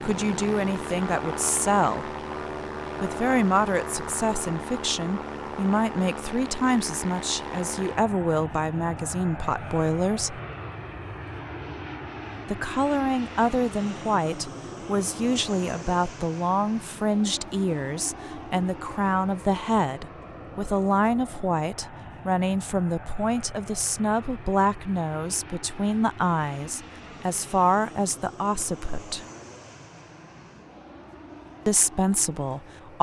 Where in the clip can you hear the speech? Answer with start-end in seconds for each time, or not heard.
0.0-2.1, 3.0-10.4, 12.4-29.2, 31.6-32.9.